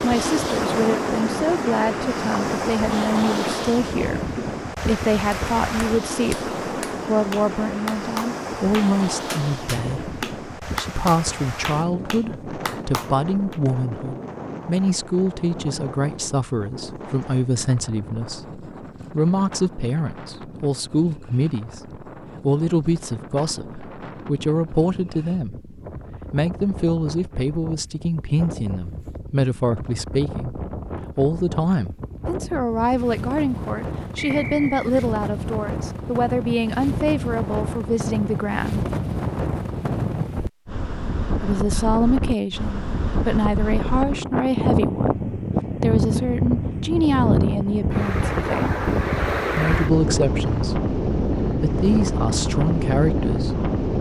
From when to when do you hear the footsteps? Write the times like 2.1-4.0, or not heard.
not heard.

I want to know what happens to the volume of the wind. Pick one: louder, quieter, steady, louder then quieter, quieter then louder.
quieter then louder.